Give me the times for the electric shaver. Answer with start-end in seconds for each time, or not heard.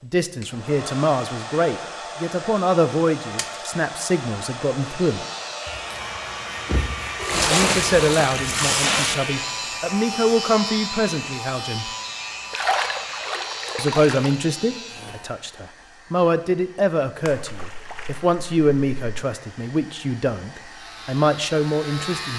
5.0-15.3, 20.6-22.3.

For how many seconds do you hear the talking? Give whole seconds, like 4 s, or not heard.
18 s.